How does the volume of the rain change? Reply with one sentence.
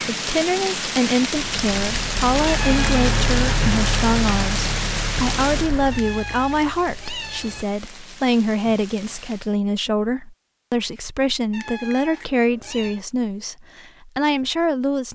The volume of the rain goes down.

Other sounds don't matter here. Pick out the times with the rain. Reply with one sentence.
You can hear the rain from 0.0 to 9.6 s.